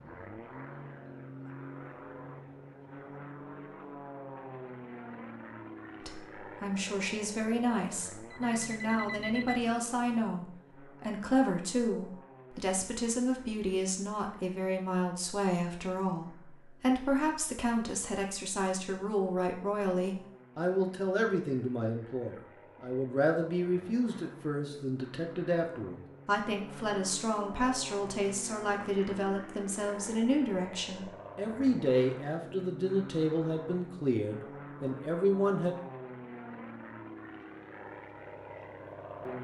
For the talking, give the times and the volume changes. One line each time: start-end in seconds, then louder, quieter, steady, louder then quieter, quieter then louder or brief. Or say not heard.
6.0-35.8 steady.